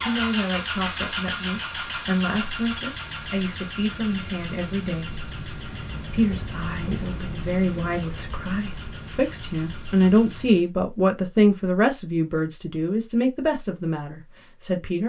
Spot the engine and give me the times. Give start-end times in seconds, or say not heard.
0.0-10.7.